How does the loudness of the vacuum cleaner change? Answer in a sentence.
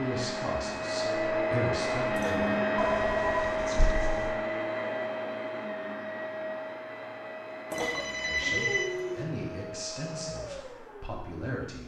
The volume of the vacuum cleaner goes down.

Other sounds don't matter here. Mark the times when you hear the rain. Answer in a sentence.
You can't hear the rain here.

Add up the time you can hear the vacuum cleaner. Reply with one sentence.
You can hear the vacuum cleaner for 12 seconds altogether.